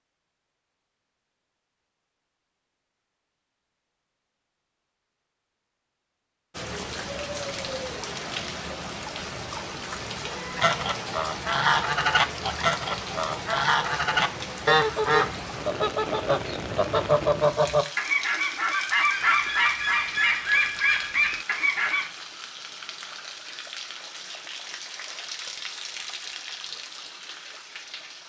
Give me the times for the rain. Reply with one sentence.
You can hear the rain from 6.5 to 28.2 s.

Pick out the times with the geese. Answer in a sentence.
The geese can be heard from 10.6 to 22.1 s.